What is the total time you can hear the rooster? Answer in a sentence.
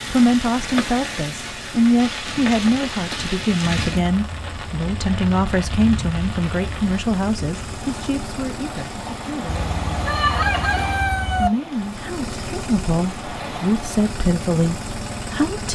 The rooster can be heard for 2 seconds in total.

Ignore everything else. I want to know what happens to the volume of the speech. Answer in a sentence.
The volume of the speech goes down, then up.